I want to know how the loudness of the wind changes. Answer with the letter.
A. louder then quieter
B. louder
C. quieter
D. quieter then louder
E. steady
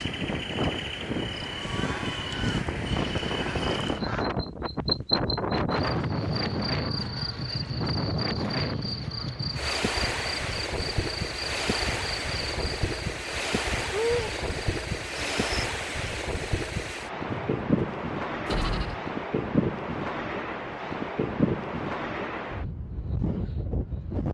E.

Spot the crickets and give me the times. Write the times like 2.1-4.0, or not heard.
0.0-15.7.